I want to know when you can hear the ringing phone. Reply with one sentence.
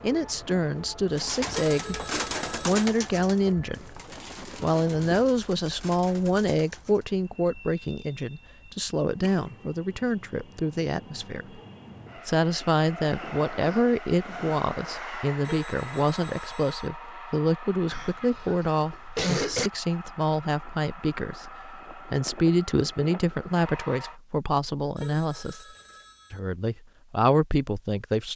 The ringing phone can be heard from 1.5 to 2.8 s, from 15.4 to 16.9 s and from 24.9 to 26.4 s.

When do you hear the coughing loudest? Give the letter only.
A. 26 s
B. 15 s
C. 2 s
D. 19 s
D.